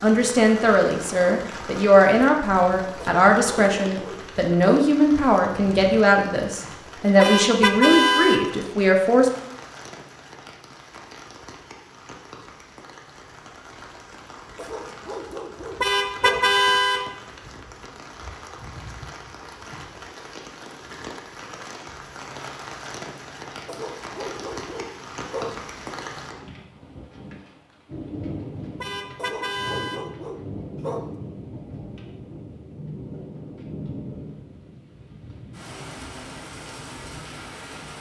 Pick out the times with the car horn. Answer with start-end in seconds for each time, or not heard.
7.2-8.6, 15.8-17.1, 28.8-30.1.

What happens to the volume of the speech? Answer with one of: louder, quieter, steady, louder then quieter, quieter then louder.
steady.